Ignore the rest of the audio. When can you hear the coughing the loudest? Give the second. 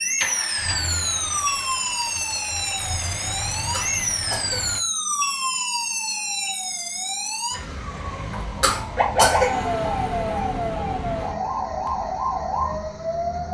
9 s.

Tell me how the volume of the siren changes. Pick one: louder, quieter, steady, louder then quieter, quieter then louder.
steady.